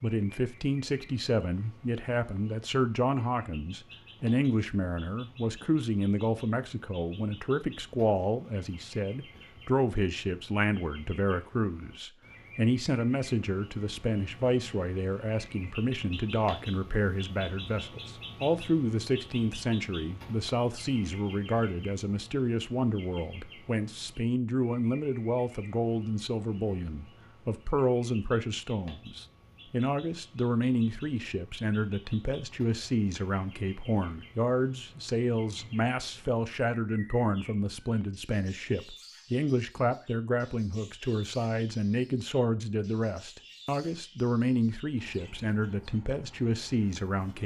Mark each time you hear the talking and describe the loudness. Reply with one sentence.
You can hear the talking from 0.0 to 47.4 s, at a steady volume.